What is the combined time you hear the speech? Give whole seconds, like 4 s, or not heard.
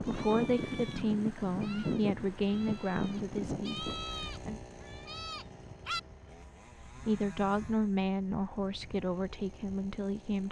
8 s.